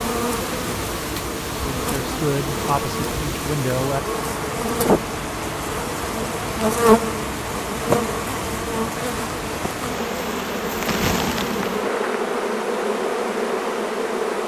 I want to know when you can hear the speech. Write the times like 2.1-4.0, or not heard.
1.6-4.0.